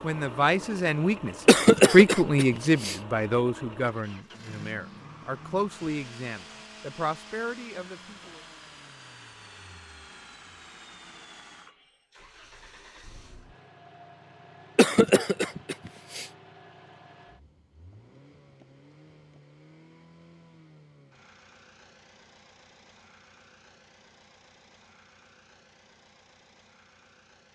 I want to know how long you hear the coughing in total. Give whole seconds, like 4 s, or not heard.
3 s.